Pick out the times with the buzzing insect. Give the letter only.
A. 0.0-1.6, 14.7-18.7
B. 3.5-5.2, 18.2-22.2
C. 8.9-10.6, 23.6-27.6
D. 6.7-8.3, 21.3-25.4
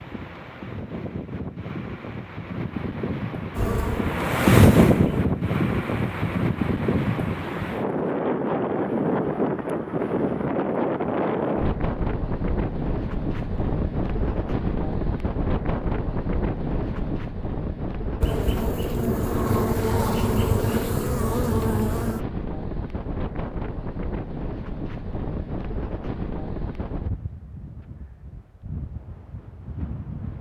B.